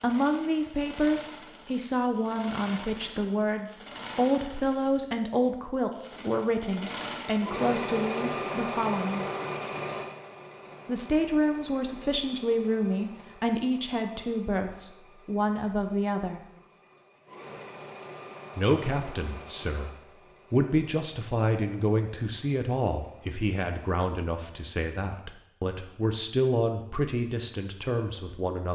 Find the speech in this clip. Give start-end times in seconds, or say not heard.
0.0-9.2, 10.8-16.4, 18.6-19.9, 20.5-28.7.